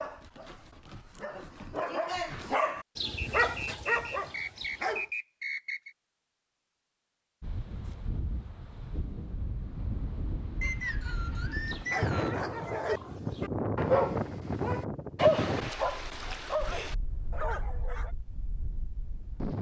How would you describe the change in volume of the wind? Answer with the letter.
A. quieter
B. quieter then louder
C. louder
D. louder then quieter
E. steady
D.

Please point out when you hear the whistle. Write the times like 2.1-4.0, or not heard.
3.1-6.0, 10.6-12.4.